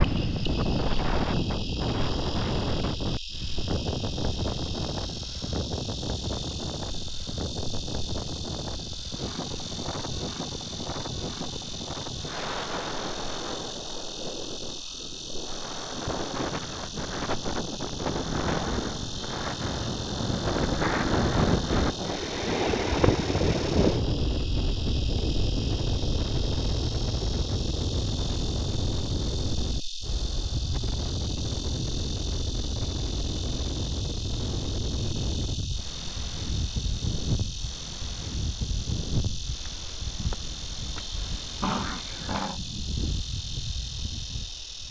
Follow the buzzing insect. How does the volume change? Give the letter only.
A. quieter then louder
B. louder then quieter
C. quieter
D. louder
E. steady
E.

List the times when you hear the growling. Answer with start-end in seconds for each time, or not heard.
41.6-42.6.